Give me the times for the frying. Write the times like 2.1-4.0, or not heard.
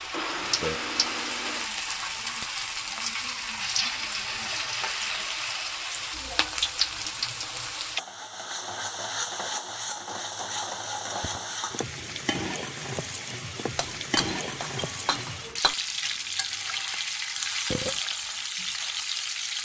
0.0-19.5.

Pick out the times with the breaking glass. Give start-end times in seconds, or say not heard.
13.8-15.8.